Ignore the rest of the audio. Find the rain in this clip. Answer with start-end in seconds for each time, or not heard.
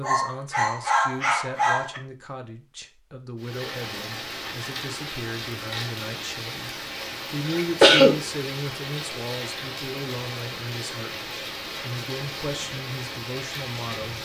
3.4-14.2.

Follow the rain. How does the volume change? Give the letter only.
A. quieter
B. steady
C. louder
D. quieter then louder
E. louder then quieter
B.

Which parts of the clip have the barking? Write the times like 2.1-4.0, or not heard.
0.0-2.0.